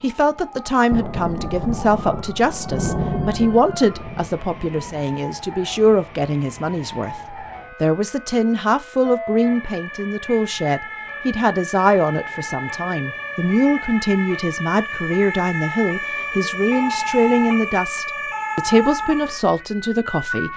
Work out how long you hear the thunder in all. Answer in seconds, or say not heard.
4 s.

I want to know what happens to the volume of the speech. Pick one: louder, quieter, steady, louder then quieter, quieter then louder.
steady.